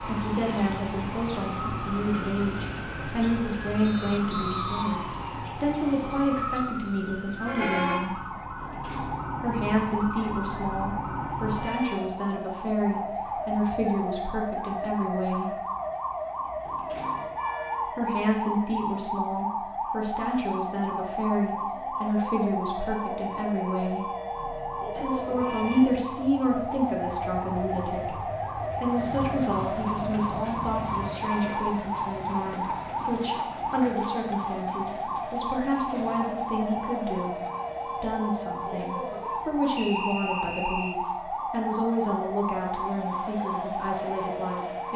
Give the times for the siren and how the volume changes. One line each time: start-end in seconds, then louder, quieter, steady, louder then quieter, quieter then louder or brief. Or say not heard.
0.0-44.9 steady.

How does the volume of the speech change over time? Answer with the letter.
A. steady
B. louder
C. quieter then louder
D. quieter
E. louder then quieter
A.